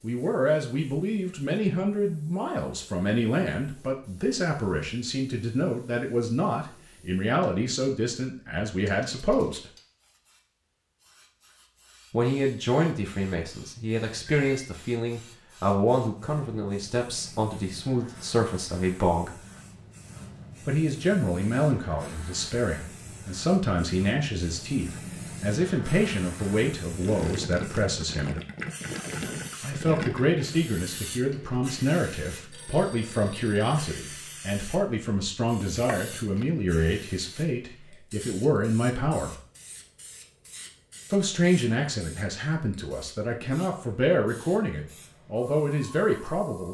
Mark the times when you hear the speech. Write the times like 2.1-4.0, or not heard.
0.0-9.7, 12.1-19.4, 20.6-28.4, 29.6-39.4, 41.1-46.7.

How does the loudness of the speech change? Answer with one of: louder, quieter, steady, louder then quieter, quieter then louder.
steady.